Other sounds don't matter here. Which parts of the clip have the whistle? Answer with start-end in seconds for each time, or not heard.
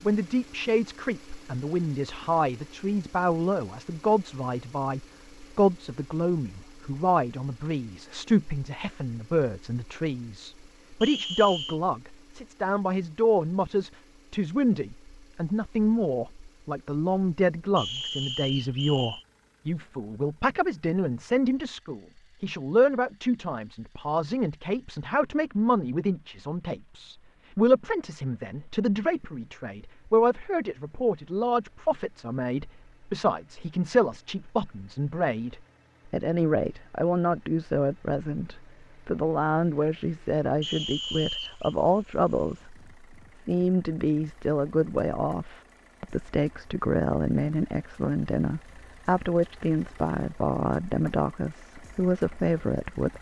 11.0-11.8, 17.8-19.2, 40.6-41.8.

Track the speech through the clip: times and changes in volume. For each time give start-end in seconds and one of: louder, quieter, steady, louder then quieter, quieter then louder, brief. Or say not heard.
0.0-53.1 steady.